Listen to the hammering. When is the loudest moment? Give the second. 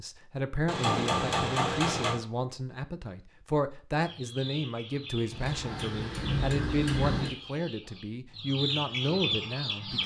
1 s.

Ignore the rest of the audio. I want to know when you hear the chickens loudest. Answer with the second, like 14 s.
9 s.